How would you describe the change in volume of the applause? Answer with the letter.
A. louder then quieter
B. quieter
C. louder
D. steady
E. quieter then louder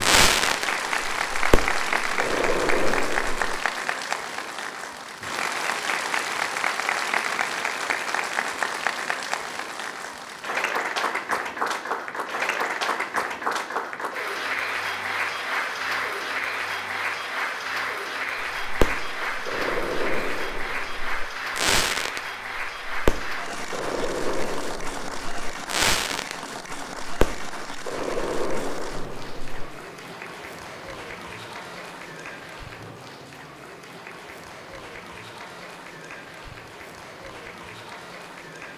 B.